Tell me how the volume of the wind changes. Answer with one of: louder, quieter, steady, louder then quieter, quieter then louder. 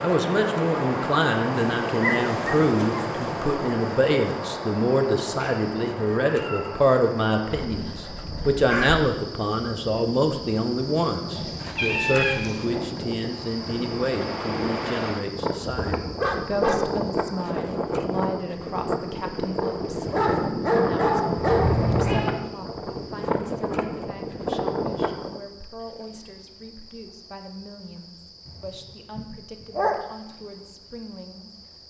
quieter then louder.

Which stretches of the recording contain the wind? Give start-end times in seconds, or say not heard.
0.0-25.4.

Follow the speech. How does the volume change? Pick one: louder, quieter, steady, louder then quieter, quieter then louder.
quieter.